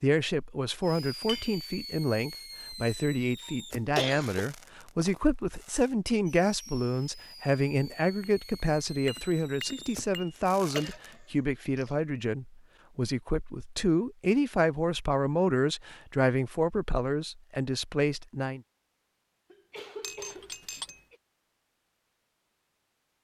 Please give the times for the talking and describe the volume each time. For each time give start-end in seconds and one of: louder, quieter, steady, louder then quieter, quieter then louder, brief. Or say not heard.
0.0-18.6 steady.